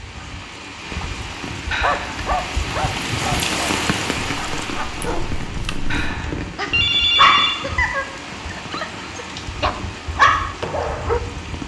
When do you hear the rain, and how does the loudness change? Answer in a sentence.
You can hear the rain from 0.0 to 11.6 s, getting louder then quieter.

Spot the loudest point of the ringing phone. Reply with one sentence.
The loudest moment of the ringing phone is at 7 seconds.